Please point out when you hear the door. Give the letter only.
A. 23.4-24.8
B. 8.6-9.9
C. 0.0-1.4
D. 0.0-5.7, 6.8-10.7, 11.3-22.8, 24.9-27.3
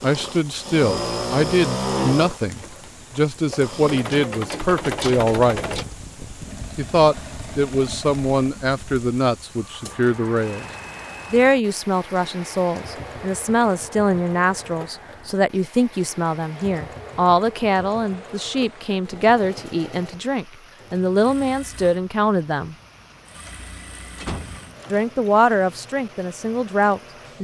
A.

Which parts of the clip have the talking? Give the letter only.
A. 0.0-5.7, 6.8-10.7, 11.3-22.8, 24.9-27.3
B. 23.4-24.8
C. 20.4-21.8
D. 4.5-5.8
A.